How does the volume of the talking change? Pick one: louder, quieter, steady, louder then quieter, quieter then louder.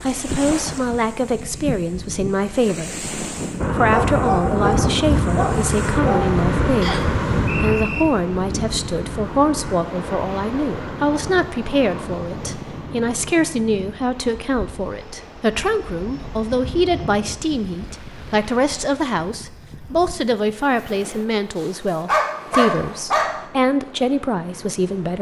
steady.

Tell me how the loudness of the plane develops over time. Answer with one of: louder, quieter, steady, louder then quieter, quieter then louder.
quieter.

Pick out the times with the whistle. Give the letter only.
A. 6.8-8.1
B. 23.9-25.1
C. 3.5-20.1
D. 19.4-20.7
A.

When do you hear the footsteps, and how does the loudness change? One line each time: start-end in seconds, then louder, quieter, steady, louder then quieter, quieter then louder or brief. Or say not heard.
not heard.